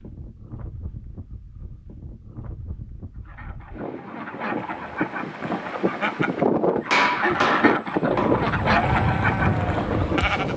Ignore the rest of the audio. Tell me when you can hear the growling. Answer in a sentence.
The growling can't be heard in this clip.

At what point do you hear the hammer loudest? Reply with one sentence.
The loudest moment of the hammer is at 7 seconds.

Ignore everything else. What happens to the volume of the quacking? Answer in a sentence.
The volume of the quacking goes up.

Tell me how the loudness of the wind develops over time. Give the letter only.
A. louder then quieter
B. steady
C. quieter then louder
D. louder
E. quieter
D.